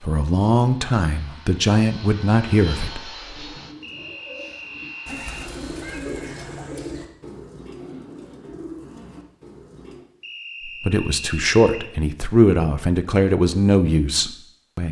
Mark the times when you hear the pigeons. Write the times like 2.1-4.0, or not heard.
3.2-10.1.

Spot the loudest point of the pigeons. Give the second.
6 s.